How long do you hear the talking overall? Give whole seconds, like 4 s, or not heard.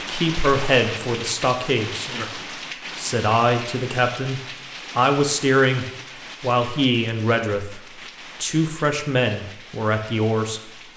10 s.